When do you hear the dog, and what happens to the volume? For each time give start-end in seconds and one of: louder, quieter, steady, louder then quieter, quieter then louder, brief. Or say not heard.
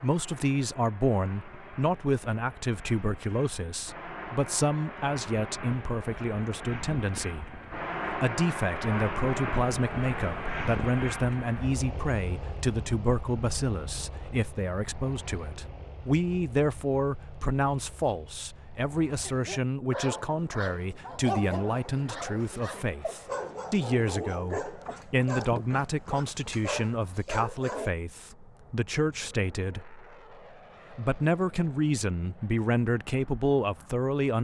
19.2-27.9 steady.